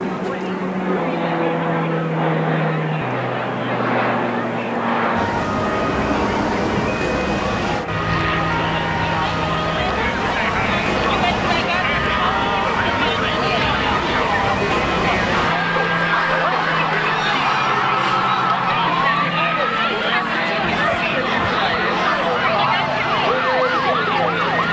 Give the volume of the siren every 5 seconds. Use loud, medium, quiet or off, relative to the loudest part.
off, loud, loud, loud, loud.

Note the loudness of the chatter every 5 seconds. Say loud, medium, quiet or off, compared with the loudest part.
medium, medium, loud, loud, loud.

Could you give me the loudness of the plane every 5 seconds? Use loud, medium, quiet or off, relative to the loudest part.
loud, loud, medium, medium, medium.